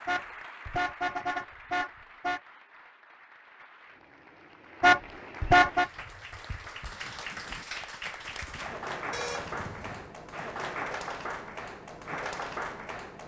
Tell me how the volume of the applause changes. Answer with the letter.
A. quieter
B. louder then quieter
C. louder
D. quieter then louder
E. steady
C.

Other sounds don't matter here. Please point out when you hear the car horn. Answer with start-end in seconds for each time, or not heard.
0.1-2.4, 4.8-5.9, 9.1-10.1.